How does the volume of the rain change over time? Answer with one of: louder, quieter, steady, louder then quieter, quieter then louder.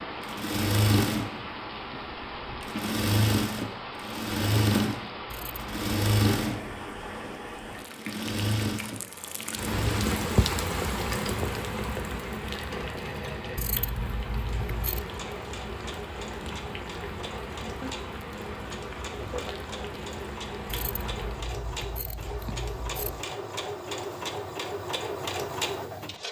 louder then quieter.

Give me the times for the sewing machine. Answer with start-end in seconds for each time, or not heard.
0.0-26.2.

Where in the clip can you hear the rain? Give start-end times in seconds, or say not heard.
0.0-21.5.